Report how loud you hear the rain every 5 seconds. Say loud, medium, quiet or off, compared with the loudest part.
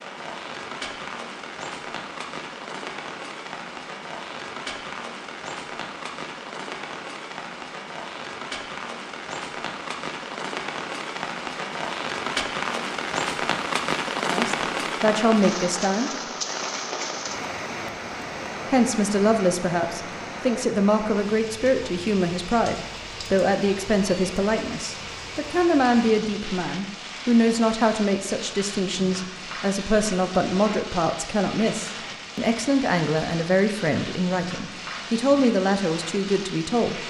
medium, medium, loud, loud, medium, medium, medium, medium.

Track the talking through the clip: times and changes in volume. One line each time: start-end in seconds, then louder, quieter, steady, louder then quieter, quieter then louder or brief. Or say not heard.
14.3-16.1 brief
18.7-37.0 steady.